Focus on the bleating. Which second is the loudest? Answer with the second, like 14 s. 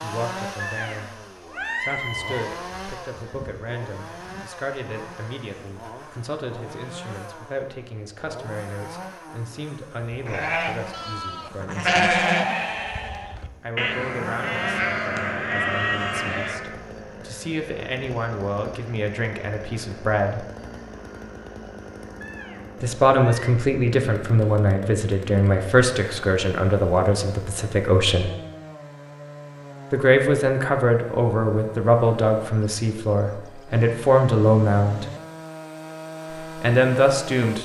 12 s.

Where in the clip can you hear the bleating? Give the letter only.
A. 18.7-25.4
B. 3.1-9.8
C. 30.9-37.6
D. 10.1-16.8
D.